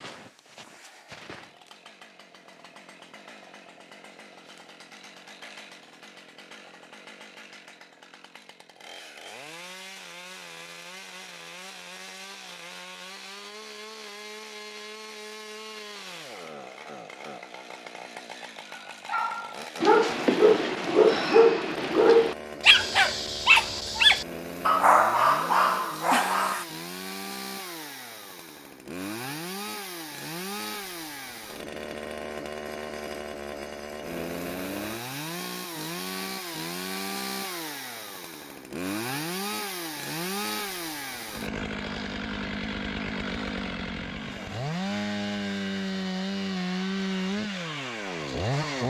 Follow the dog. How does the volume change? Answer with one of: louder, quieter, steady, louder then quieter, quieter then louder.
steady.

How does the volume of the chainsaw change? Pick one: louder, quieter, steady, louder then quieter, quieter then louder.
louder.